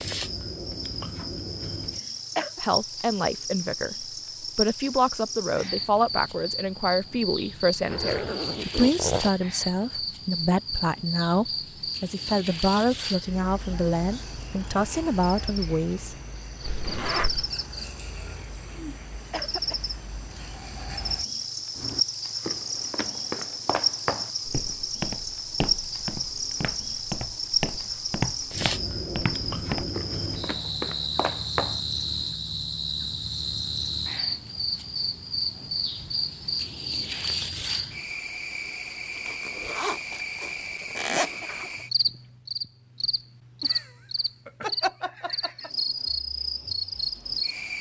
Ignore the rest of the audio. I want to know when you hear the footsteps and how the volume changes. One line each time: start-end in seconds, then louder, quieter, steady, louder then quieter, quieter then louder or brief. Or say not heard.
21.8-31.8 steady.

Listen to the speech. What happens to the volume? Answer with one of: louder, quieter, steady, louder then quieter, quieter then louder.
steady.